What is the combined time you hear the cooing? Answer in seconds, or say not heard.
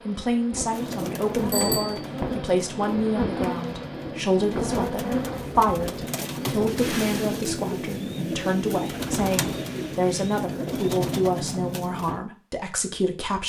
12 s.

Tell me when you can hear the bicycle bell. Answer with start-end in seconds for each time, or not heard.
1.5-2.0.